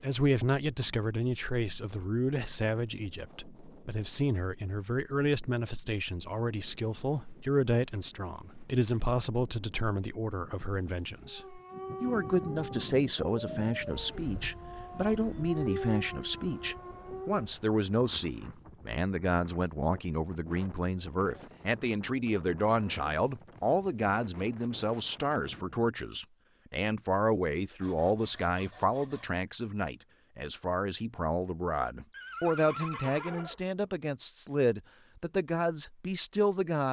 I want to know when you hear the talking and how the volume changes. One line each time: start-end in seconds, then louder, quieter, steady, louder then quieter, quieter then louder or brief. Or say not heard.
0.0-36.8 steady.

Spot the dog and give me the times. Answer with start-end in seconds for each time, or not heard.
11.2-17.5.